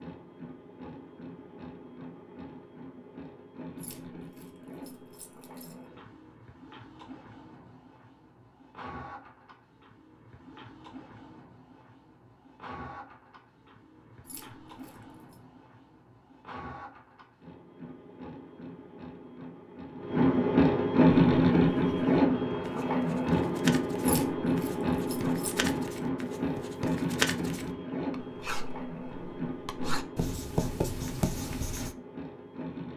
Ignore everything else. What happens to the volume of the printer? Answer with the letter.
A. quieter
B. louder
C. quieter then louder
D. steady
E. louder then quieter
E.